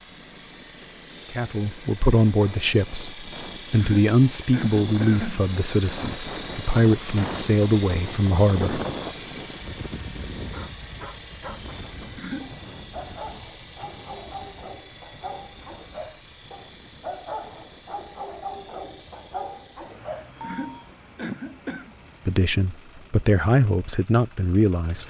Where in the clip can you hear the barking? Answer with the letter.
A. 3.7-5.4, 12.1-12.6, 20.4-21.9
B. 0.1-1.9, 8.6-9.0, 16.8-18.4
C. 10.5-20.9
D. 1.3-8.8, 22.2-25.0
C.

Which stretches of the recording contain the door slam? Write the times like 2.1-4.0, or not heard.
not heard.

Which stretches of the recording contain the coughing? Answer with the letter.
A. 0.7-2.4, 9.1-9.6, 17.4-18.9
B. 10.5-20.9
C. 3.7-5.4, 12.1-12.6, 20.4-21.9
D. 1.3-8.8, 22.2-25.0
C.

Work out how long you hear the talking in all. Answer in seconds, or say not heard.
10 s.